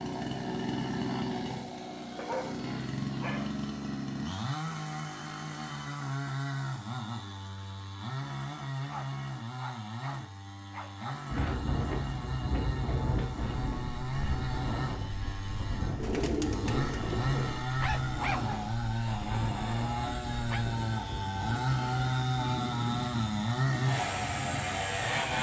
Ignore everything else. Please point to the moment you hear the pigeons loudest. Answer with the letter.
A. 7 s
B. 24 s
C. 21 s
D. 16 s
D.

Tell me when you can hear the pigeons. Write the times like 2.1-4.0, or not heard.
15.9-17.6.